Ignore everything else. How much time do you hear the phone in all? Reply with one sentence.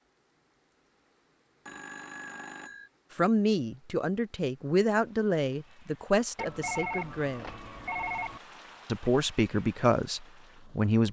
The phone can be heard for 3 seconds in total.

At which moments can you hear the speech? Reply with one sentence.
You can hear the speech from 3.1 to 7.5 s and from 8.8 to 11.0 s.